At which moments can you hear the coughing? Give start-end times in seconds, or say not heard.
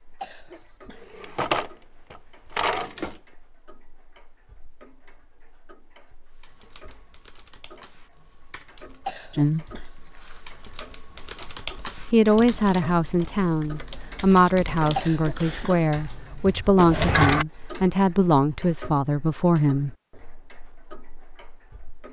0.2-1.6, 9.1-10.4, 14.9-15.8.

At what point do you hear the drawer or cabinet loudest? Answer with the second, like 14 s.
17 s.